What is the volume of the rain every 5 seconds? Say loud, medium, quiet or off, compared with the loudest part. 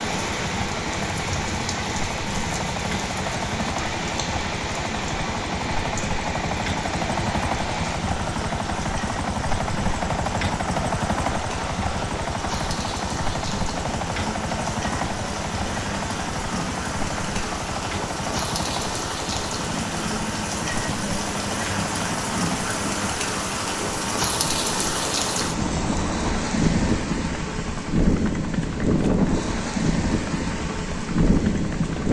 medium, medium, medium, medium, loud, loud, loud.